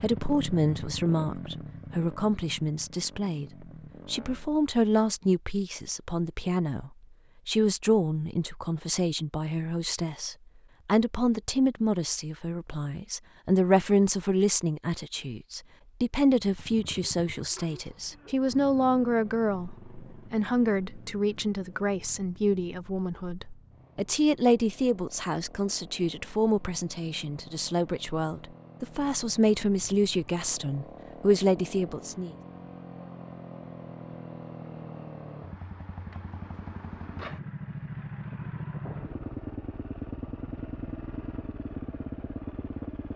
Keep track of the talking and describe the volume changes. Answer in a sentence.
The loudness of the talking stays about the same.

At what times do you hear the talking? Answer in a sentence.
You can hear the talking from 0.0 to 32.3 s.